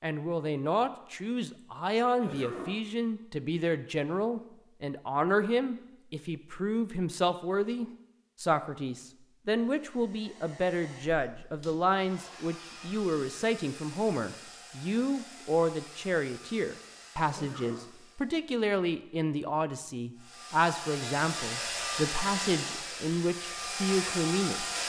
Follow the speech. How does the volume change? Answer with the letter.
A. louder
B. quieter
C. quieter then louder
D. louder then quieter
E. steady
E.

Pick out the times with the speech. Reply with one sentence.
The speech can be heard from 0.0 to 24.7 s.